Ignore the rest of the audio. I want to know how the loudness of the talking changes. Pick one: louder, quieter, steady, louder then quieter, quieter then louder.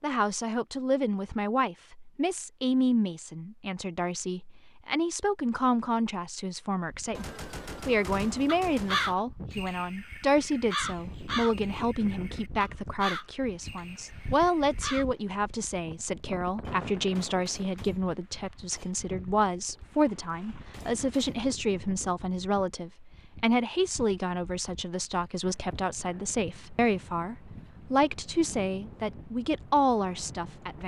steady.